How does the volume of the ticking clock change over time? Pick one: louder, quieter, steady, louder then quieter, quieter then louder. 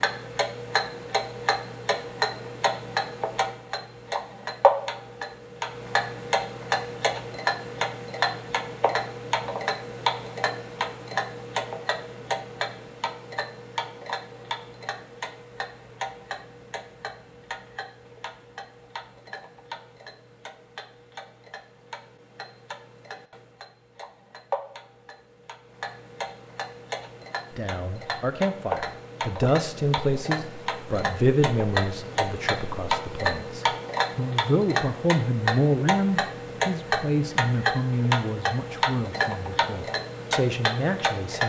quieter then louder.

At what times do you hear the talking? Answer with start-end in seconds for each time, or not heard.
27.6-41.4.